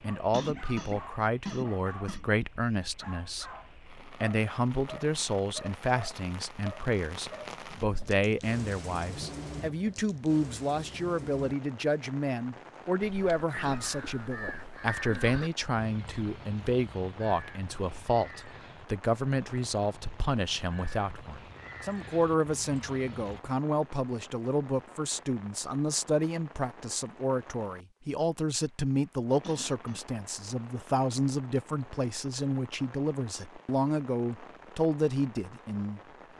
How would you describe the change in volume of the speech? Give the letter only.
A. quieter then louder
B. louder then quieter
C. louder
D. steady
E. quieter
D.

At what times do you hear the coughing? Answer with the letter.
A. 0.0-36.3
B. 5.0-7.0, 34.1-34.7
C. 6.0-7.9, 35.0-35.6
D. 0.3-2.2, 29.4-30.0
D.